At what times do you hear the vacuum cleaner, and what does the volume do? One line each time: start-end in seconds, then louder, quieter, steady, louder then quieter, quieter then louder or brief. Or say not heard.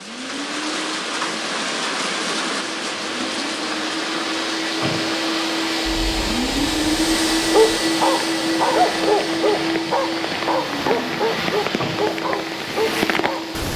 0.0-13.7 louder then quieter.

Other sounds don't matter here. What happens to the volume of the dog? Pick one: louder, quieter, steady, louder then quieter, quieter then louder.
quieter.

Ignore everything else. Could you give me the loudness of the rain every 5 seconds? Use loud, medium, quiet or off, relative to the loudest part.
loud, medium, loud.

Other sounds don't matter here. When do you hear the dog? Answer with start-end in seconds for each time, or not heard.
7.4-13.6.